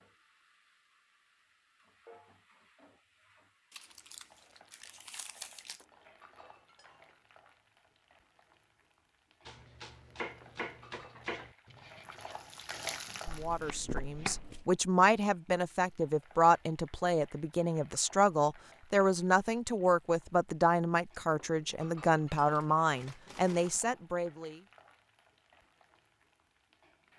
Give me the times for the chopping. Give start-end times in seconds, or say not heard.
9.4-14.4.